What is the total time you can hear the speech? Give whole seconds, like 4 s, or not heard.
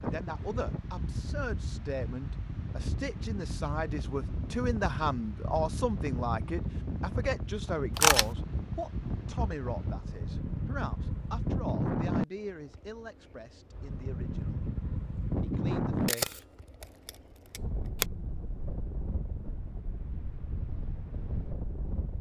16 s.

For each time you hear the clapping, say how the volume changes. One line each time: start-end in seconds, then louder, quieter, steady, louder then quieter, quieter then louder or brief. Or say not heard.
not heard.